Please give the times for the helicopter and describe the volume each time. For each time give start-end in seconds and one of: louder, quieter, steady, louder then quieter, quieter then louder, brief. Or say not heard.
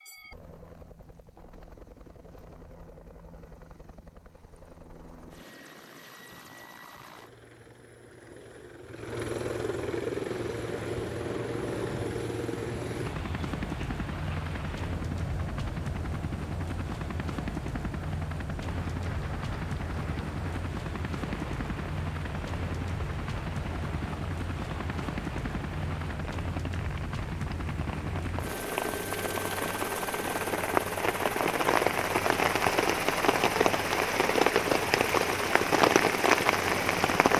0.0-37.3 louder.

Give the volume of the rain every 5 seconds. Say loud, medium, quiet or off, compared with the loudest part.
off, off, quiet, quiet, quiet, quiet, loud, loud.